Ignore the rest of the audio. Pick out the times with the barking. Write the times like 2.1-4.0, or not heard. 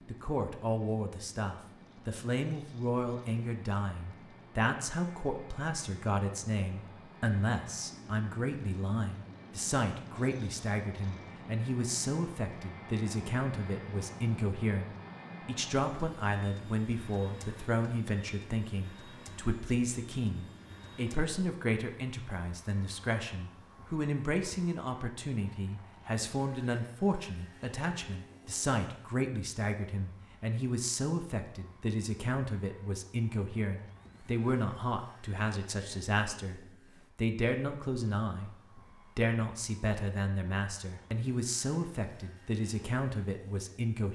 not heard.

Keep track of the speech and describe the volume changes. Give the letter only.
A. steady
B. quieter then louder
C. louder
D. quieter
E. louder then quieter
A.